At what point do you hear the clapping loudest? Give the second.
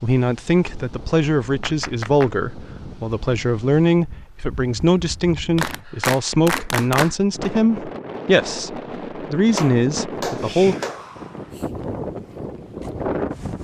7 s.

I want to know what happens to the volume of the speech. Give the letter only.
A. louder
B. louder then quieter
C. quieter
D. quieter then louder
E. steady
E.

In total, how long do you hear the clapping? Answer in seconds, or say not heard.
4 s.